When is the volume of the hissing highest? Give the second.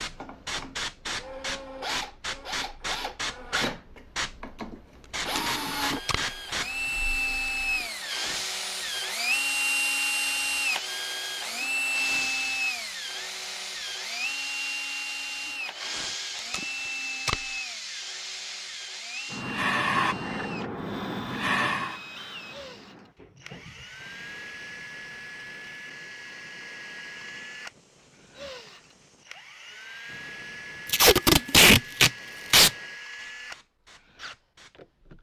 20 s.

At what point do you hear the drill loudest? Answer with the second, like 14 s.
10 s.